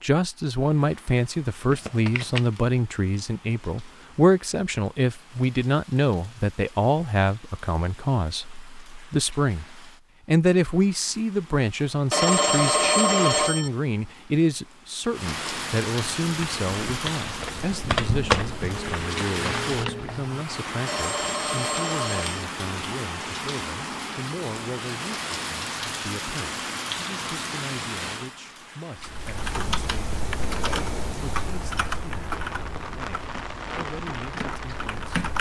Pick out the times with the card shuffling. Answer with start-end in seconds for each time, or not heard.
1.7-2.5, 18.7-20.2.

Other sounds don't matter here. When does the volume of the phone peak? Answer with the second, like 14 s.
13 s.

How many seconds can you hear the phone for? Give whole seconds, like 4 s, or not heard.
3 s.